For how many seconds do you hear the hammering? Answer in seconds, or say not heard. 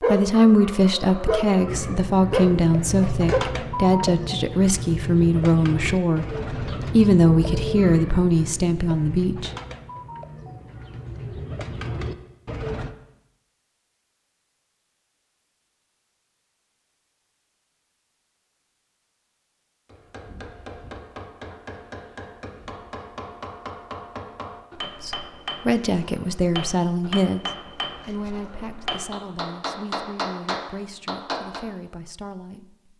12 s.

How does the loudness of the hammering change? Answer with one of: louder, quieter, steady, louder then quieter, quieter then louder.
louder.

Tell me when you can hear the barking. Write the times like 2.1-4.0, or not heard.
0.0-3.4.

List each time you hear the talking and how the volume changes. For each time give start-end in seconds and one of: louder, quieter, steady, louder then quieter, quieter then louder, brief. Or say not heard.
0.0-9.5 steady
25.0-32.9 quieter.